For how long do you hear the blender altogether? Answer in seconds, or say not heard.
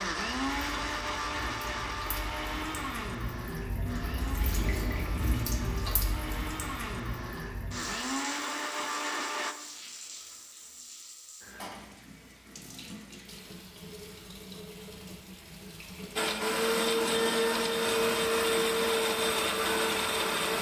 14 s.